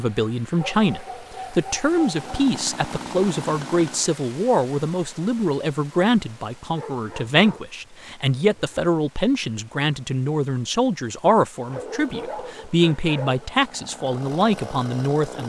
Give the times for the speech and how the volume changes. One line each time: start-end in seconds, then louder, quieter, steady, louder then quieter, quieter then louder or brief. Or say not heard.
0.0-15.4 steady.